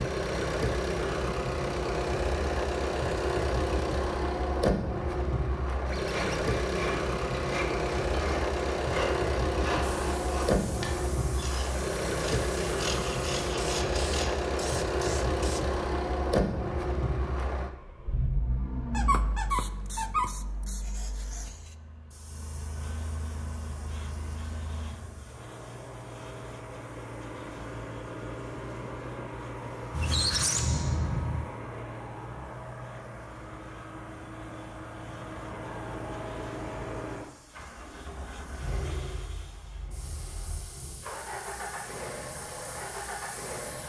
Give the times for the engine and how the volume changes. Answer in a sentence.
The engine can be heard from 0.0 to 43.8 s, getting quieter.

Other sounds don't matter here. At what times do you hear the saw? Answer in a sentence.
The saw can be heard from 6.0 to 14.3 s.